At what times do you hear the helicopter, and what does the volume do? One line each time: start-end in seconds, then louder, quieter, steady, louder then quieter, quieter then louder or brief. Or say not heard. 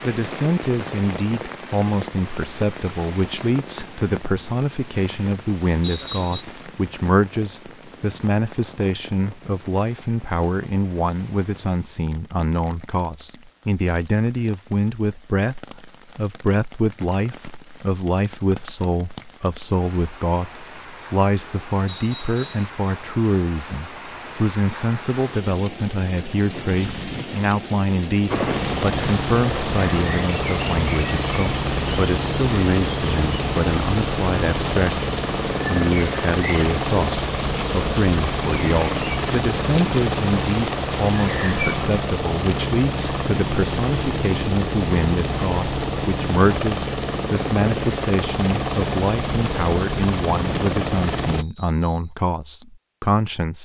28.2-51.5 steady.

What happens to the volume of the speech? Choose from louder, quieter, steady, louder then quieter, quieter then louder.
steady.